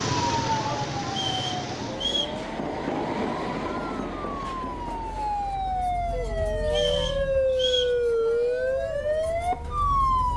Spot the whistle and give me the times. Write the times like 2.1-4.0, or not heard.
1.1-2.4, 6.7-8.0.